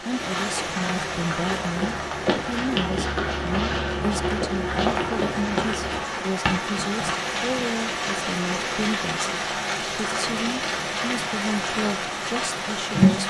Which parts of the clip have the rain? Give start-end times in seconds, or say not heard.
0.0-13.2.